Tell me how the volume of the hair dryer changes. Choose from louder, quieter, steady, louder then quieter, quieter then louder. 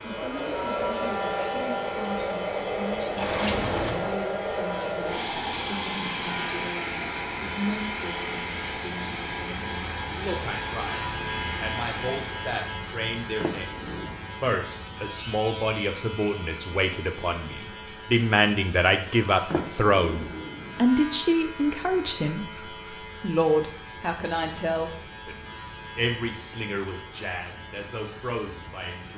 quieter.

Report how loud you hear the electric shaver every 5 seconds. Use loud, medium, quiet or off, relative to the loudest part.
medium, loud, loud, medium, medium, medium.